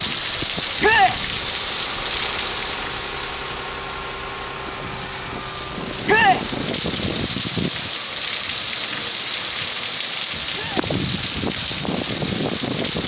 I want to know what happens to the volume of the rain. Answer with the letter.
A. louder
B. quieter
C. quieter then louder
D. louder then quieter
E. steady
C.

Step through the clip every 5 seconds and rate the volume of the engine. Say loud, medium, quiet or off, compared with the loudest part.
loud, loud, off.